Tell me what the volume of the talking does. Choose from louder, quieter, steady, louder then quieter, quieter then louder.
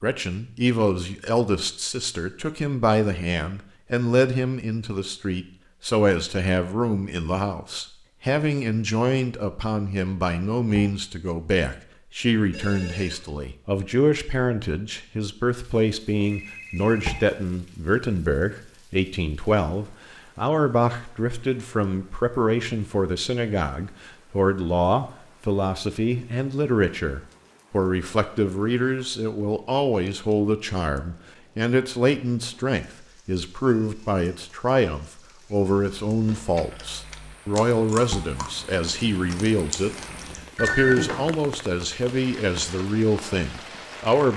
steady.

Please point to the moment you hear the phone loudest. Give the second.
41 s.